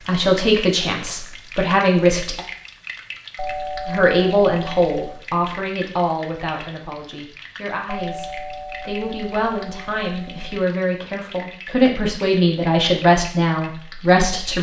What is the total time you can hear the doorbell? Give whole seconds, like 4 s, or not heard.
5 s.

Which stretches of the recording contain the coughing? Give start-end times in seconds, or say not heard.
not heard.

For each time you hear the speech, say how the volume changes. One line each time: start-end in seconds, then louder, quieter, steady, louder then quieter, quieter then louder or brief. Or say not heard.
0.1-2.4 brief
3.9-14.5 quieter then louder.